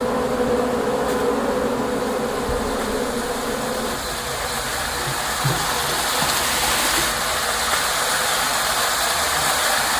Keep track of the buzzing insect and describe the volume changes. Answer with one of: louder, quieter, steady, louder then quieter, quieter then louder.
quieter.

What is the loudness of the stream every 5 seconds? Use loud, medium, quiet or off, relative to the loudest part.
medium, loud.